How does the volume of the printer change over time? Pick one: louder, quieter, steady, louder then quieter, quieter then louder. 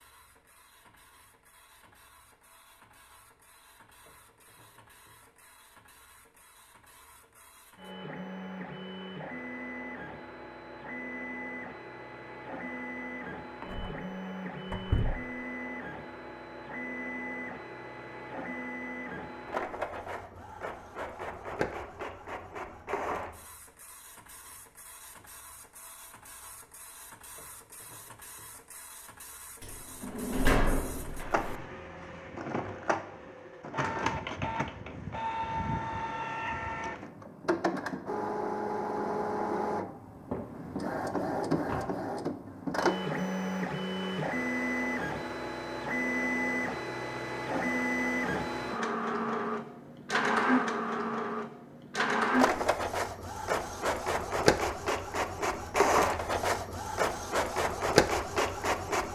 louder.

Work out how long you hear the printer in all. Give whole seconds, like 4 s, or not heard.
59 s.